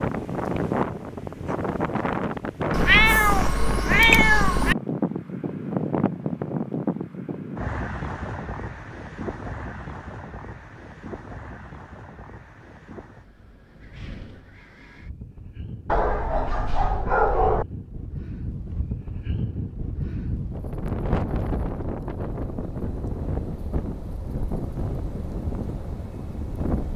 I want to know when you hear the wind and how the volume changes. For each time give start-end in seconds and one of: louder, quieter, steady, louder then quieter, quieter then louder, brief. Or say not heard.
0.0-26.9 quieter then louder.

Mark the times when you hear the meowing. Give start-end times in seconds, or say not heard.
2.7-4.8.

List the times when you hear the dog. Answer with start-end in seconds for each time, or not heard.
15.8-17.6.